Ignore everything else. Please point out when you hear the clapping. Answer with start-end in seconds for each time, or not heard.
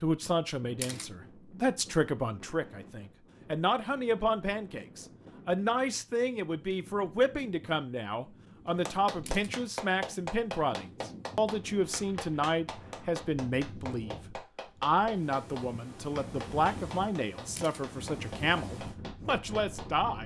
8.8-19.9.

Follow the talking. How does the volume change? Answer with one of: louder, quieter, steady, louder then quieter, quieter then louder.
steady.